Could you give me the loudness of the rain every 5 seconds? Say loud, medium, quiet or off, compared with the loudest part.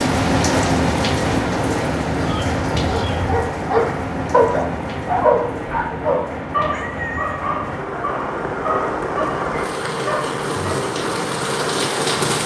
loud, medium, loud.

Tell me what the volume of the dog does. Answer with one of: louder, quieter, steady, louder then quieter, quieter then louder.
quieter.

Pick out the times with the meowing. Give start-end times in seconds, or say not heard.
2.2-3.4, 6.7-7.5.